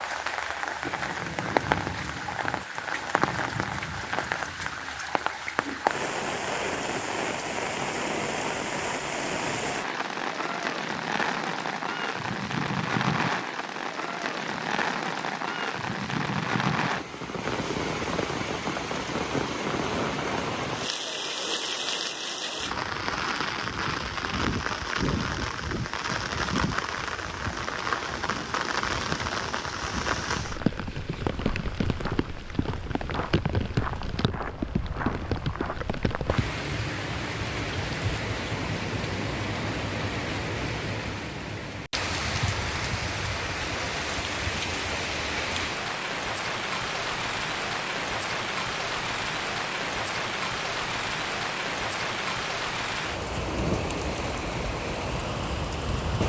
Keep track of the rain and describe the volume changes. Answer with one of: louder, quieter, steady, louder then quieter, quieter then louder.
steady.